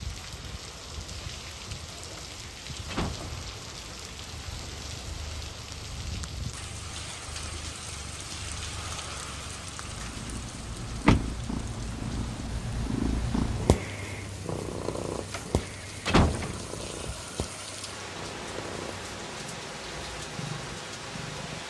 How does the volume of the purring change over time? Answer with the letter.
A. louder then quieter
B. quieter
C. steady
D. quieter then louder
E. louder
A.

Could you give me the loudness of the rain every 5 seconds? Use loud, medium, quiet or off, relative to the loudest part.
loud, loud, medium, loud, loud.